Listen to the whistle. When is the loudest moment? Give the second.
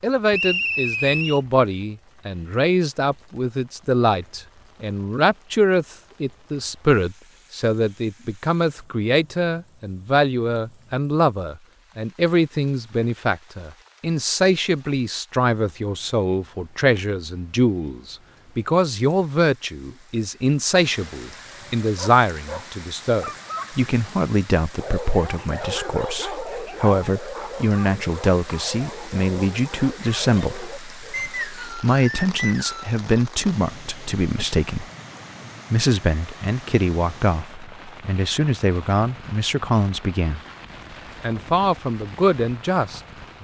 1 s.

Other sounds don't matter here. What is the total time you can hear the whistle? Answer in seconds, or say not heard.
3 s.